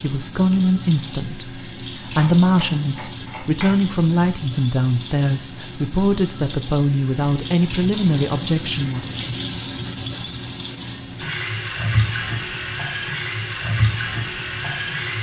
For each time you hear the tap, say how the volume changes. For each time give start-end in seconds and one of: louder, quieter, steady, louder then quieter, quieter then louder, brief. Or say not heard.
0.0-15.1 louder.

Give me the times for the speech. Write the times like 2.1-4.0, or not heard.
0.0-9.2.